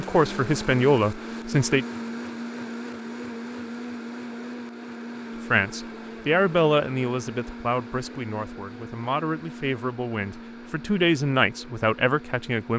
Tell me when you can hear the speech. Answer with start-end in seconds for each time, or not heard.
0.0-1.9, 5.5-12.7.